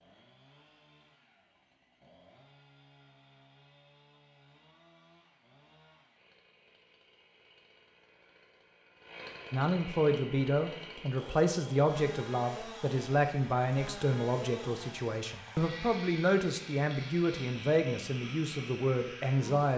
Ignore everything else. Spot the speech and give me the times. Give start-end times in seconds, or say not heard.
9.5-19.7.